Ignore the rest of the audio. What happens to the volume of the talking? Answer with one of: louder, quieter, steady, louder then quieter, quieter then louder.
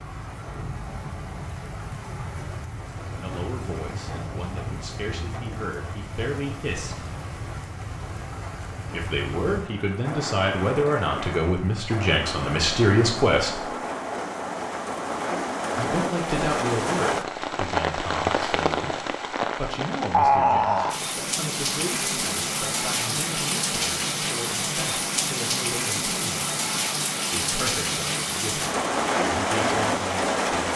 louder then quieter.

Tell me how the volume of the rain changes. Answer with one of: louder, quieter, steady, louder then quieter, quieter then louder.
louder.